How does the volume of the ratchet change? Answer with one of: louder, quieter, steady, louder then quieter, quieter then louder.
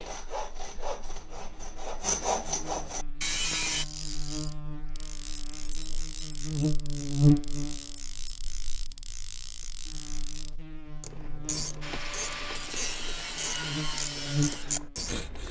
louder.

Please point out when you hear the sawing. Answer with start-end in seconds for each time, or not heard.
0.0-3.9, 11.8-15.4.